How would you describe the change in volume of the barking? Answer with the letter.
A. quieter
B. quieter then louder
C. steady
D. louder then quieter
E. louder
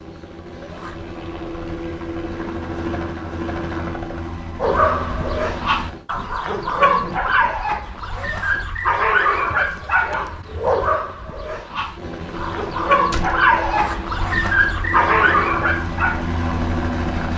C.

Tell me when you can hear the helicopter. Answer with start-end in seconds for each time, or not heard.
0.0-6.0, 11.9-17.3.